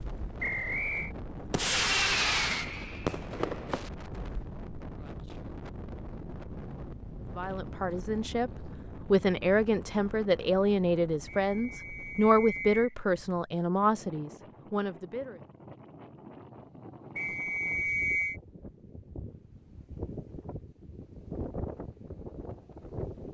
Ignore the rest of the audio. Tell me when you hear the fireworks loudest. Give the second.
2 s.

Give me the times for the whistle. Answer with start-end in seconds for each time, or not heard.
0.4-1.1, 11.4-12.9, 17.1-18.4.